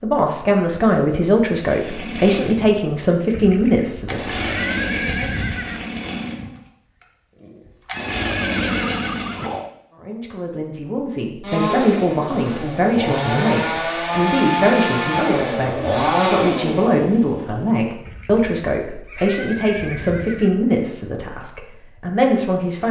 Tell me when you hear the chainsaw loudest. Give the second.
16 s.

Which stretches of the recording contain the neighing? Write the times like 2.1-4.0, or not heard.
3.3-5.9, 7.9-9.7, 18.1-20.6.